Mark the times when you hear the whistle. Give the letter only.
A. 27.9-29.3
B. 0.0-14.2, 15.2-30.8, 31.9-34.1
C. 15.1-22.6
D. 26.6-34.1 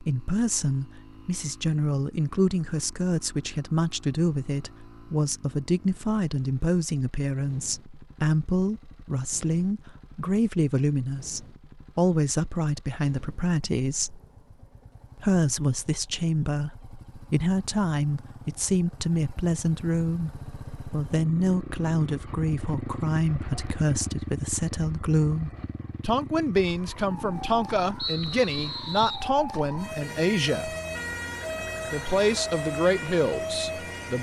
A.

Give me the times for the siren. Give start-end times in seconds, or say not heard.
26.6-34.1.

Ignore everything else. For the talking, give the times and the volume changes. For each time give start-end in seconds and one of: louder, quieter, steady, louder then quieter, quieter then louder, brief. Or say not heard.
0.0-14.2 steady
15.2-30.8 steady
31.9-34.1 brief.